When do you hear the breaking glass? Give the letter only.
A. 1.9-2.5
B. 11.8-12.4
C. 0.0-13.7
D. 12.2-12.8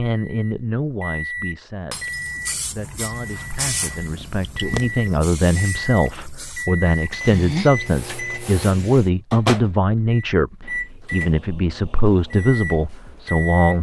A.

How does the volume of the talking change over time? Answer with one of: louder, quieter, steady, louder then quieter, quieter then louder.
louder.